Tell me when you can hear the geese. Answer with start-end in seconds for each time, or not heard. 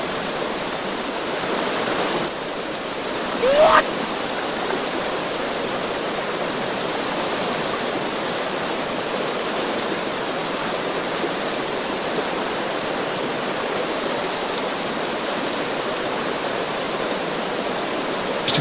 not heard.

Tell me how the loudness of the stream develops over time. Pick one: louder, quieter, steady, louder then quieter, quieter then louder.
steady.